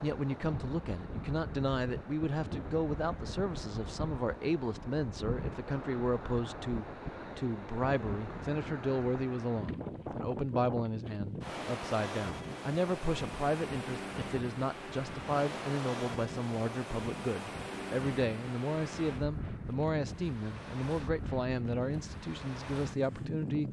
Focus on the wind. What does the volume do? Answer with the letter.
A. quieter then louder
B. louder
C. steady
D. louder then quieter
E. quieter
C.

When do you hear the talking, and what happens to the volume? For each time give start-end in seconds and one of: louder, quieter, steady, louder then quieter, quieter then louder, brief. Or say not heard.
0.0-23.6 steady.